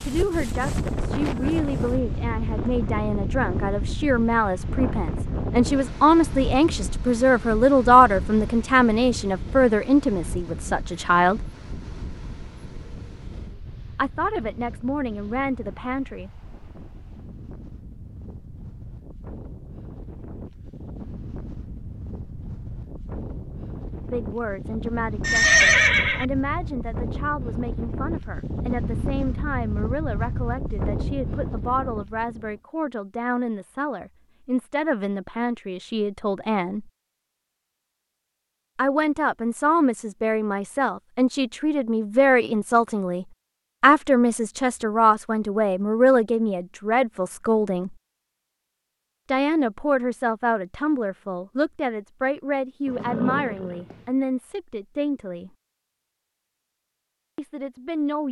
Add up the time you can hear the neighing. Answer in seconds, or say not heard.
2 s.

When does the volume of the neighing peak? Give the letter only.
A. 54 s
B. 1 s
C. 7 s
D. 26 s
D.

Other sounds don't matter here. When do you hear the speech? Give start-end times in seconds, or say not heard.
0.0-11.5, 13.9-16.3, 24.1-36.9, 38.8-48.0, 49.3-55.5, 57.4-58.2.